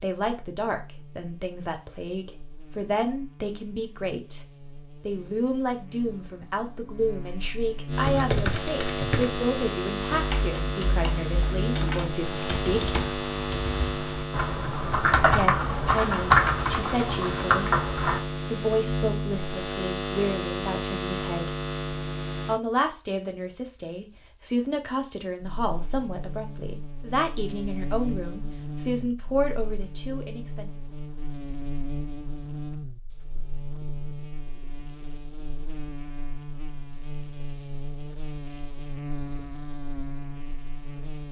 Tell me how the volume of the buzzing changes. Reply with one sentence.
The volume of the buzzing goes up, then down.